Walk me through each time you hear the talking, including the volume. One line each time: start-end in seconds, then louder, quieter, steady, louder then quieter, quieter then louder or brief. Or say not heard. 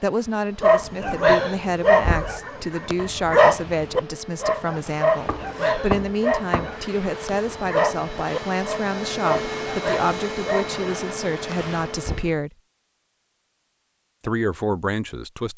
0.0-12.5 steady
14.2-15.5 brief.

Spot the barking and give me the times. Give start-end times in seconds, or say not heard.
0.6-11.8.